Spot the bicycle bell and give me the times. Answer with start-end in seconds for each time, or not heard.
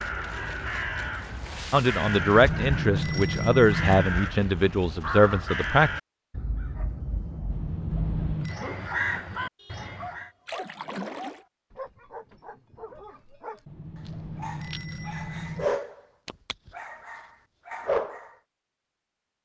2.2-4.1, 7.5-8.6, 13.7-15.7.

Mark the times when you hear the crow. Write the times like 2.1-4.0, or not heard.
0.0-10.3.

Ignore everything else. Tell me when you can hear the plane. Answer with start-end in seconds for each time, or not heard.
not heard.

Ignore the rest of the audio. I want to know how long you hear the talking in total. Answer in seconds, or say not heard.
4 s.